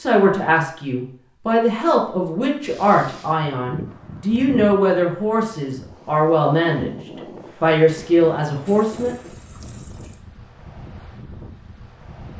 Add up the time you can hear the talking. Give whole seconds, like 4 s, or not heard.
9 s.